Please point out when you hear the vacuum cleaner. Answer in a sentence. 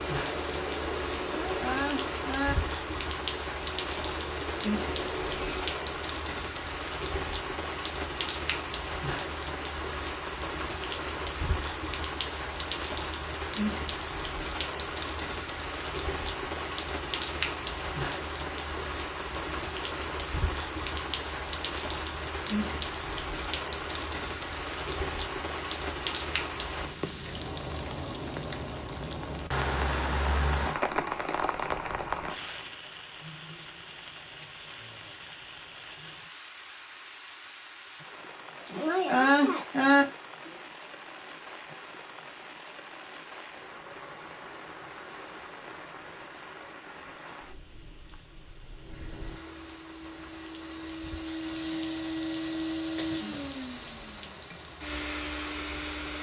The vacuum cleaner can be heard from 0.0 to 5.8 s and from 48.7 to 56.1 s.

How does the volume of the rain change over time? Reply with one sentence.
The volume of the rain goes down.